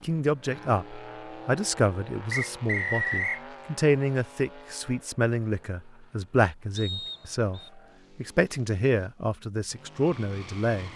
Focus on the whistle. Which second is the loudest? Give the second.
3 s.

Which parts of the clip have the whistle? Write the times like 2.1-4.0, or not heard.
2.3-3.4, 6.8-7.7.